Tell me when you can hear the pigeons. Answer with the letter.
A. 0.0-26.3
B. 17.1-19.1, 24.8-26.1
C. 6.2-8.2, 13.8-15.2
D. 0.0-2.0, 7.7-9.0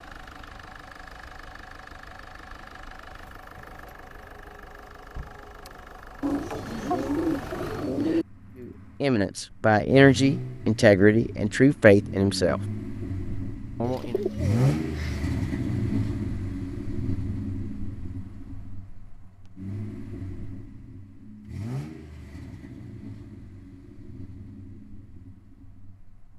C.